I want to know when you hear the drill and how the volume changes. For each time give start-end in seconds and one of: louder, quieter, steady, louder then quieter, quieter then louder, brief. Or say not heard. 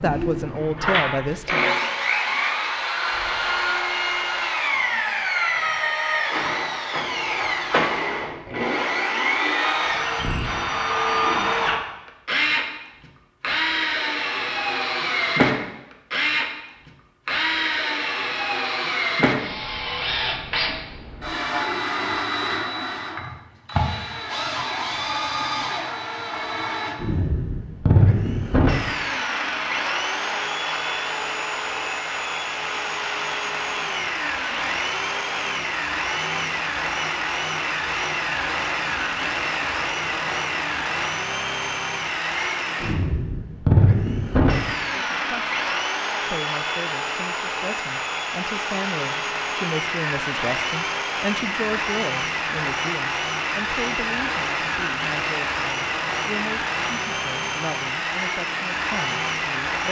0.0-59.8 steady.